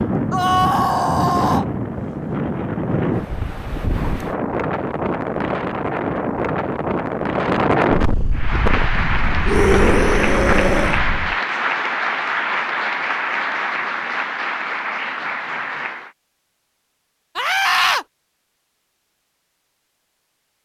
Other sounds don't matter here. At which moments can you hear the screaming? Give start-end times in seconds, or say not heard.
0.3-1.6, 9.4-11.0, 17.4-18.1.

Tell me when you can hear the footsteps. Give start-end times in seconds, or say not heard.
not heard.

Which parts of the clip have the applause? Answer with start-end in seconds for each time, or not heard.
8.3-16.1.